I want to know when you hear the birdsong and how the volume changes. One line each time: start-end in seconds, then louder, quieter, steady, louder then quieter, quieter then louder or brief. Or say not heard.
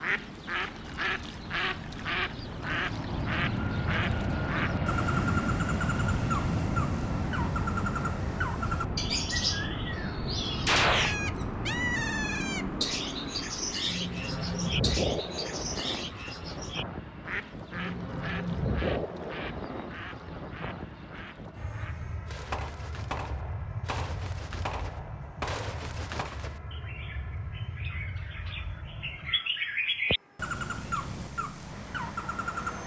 0.0-32.8 quieter then louder.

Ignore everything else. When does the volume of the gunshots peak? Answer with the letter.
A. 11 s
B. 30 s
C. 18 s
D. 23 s
A.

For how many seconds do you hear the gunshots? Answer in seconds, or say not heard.
4 s.